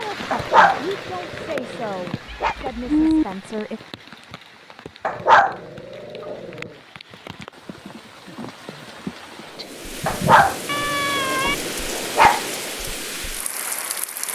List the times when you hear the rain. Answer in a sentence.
The rain can be heard from 0.0 to 14.2 s.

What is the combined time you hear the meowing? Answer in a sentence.
The meowing can be heard for 3 seconds in total.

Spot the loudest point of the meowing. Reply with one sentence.
The loudest moment of the meowing is at 3 seconds.